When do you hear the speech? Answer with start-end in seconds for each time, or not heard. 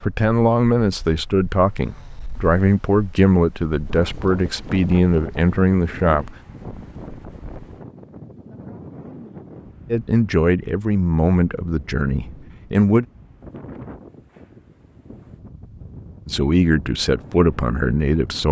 0.0-6.3, 9.9-13.1, 16.2-18.4.